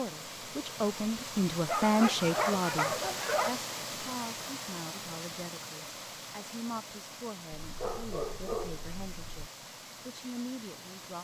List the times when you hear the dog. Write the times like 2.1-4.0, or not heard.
1.6-3.6, 7.5-9.5.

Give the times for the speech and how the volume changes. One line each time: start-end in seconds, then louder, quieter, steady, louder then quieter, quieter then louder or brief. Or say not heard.
0.0-9.4 quieter
10.1-11.1 brief.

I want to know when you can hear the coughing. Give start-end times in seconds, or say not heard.
not heard.